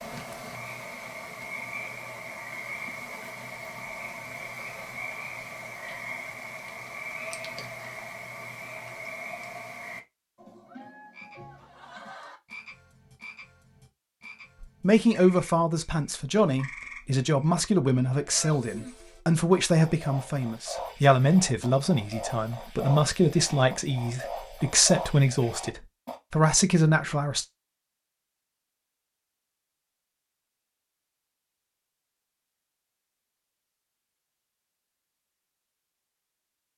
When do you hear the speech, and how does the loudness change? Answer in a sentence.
You can hear the speech from 14.6 to 27.4 s, at a steady volume.